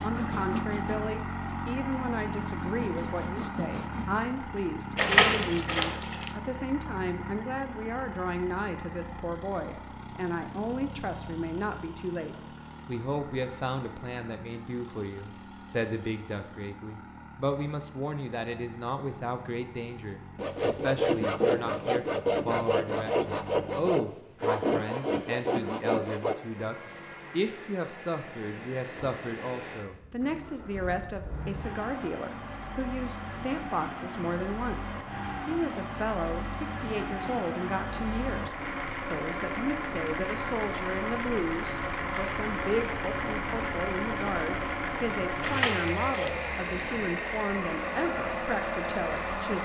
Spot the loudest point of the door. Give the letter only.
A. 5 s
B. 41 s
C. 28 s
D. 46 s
A.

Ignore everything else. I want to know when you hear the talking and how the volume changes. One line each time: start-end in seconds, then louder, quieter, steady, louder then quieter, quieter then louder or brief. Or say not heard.
0.0-49.5 steady.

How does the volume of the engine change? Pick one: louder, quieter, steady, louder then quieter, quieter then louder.
quieter then louder.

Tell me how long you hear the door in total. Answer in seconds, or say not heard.
2 s.